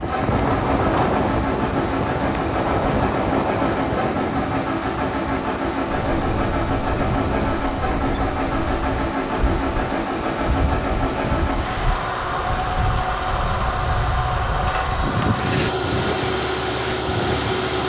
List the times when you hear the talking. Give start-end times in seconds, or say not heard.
not heard.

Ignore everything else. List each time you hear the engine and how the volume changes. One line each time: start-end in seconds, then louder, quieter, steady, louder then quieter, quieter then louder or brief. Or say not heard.
0.0-17.8 steady.